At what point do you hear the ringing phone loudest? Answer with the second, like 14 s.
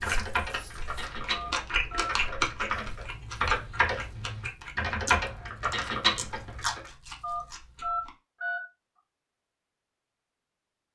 8 s.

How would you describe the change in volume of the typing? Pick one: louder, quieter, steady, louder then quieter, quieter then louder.
louder.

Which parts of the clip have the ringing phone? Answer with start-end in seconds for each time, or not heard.
1.3-2.1, 7.2-8.6.